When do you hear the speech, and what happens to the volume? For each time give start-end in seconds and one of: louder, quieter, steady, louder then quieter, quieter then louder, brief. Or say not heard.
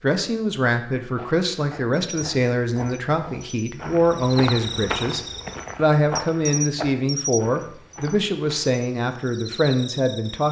0.0-10.4 steady.